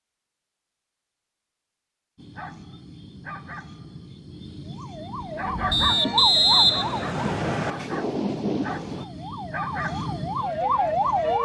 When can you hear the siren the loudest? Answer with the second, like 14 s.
11 s.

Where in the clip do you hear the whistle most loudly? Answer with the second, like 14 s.
7 s.